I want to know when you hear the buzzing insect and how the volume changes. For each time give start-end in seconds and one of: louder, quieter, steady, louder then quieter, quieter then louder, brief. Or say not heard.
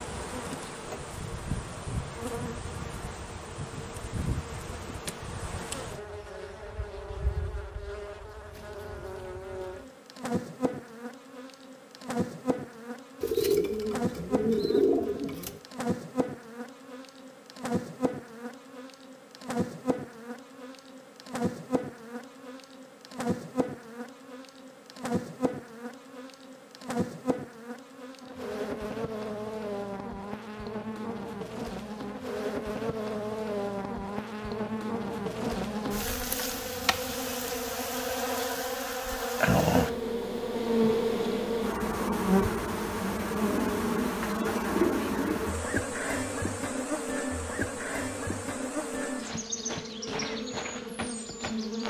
0.0-51.8 louder.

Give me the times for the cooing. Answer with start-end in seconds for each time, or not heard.
13.2-15.6, 43.5-45.5.